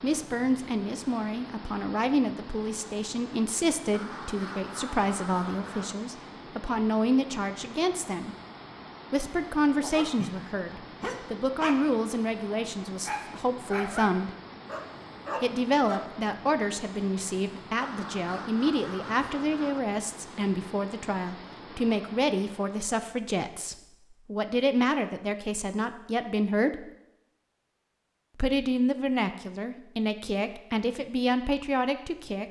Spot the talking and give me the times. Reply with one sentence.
The talking can be heard from 0.0 to 8.3 s, from 9.1 to 14.3 s, from 15.4 to 26.9 s and from 28.4 to 32.4 s.